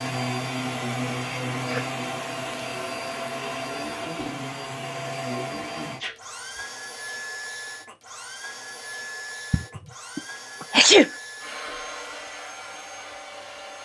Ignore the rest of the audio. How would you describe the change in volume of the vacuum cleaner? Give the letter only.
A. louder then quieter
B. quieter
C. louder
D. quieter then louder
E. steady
B.